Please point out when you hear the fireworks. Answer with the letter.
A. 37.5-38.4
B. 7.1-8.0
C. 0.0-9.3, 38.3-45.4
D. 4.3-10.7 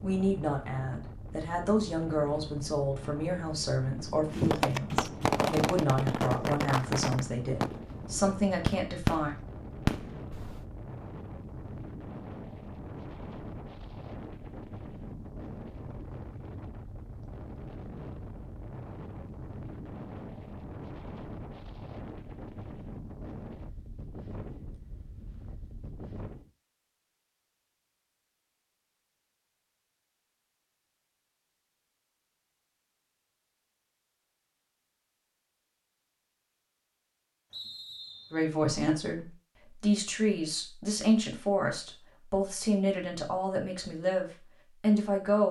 D.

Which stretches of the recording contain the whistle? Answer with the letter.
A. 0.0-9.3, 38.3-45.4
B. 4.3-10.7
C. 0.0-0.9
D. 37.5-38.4
D.